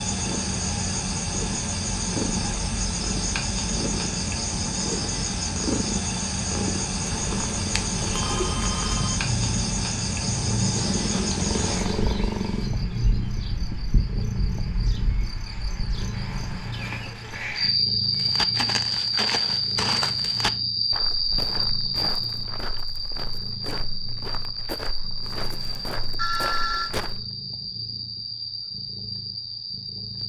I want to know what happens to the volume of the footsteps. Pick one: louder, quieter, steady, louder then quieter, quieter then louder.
quieter.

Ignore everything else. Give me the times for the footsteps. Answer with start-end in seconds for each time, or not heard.
18.1-27.2.